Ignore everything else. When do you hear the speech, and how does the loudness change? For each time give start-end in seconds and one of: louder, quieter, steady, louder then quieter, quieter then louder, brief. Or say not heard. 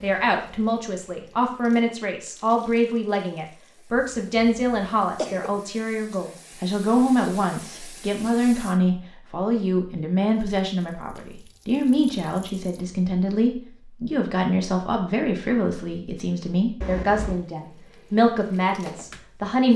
0.0-19.7 steady.